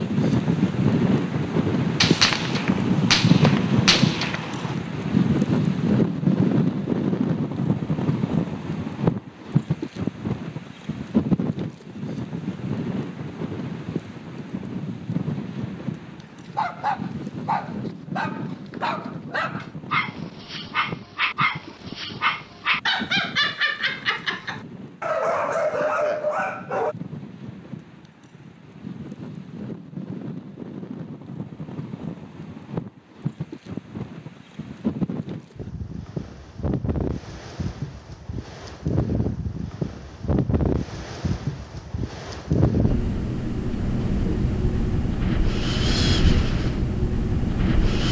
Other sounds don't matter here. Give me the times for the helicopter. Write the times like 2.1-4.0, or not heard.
not heard.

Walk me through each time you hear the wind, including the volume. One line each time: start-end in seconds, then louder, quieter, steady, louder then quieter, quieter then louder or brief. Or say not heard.
0.0-48.0 quieter then louder.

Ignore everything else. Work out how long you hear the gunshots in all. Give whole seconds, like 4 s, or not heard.
3 s.